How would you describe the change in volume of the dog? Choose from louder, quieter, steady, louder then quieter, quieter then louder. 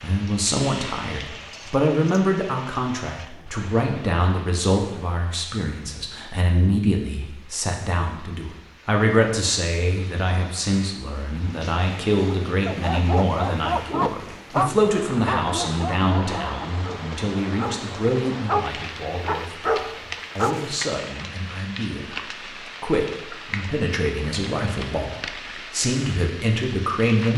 quieter then louder.